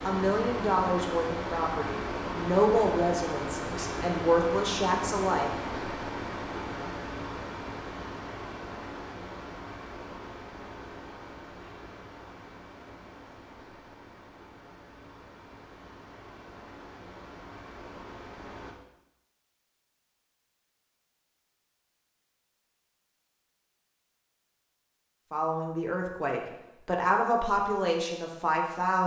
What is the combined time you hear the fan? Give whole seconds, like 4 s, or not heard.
19 s.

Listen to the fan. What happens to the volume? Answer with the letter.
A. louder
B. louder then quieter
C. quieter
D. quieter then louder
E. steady
C.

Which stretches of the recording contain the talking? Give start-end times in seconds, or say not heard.
0.0-5.5, 25.3-29.0.